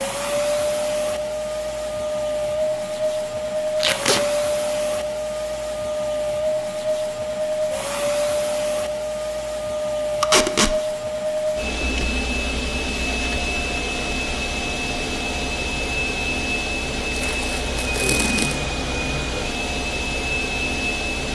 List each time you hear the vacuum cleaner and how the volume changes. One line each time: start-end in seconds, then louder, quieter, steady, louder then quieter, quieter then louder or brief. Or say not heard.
0.0-21.3 steady.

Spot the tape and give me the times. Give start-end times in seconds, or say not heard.
3.8-4.2, 10.2-10.8, 17.1-18.6.